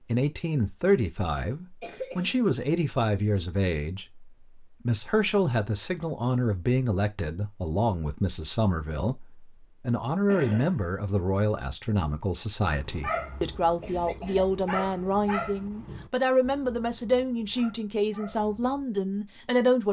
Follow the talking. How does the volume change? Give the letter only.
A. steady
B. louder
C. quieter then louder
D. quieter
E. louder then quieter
A.